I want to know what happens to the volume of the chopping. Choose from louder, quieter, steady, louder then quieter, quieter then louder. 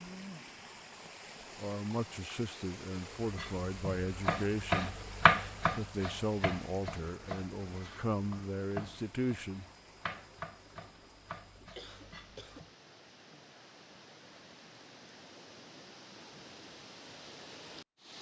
quieter.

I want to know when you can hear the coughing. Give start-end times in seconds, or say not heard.
11.8-12.7.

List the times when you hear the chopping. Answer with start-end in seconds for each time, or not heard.
3.2-12.7.